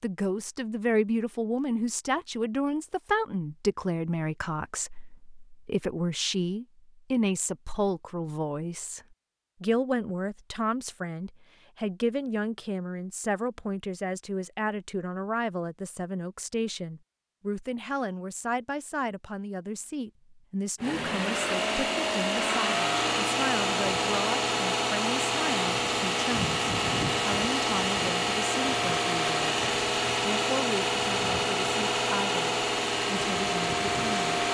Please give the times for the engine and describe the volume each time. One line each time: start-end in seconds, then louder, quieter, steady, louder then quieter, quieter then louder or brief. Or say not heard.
20.8-34.4 steady.